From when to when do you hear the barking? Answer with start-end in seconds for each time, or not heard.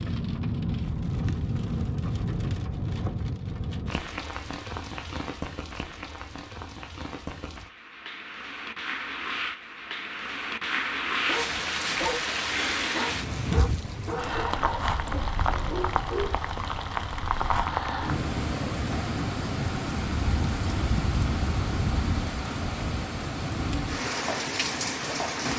11.2-16.5.